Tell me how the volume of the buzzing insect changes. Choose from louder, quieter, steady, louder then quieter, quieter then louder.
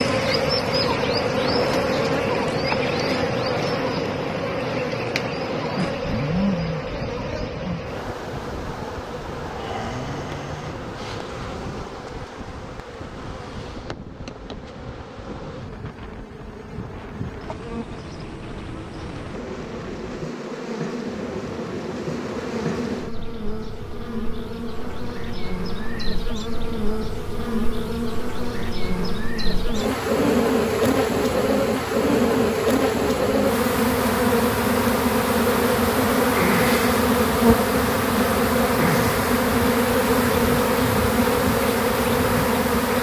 quieter then louder.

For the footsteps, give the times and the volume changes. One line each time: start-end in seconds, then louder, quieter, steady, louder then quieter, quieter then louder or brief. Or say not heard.
not heard.